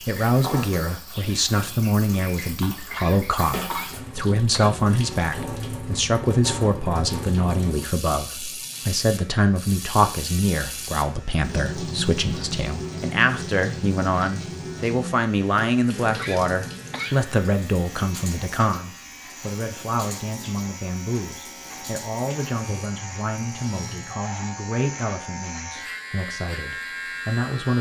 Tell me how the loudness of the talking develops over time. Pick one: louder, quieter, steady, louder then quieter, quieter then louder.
quieter.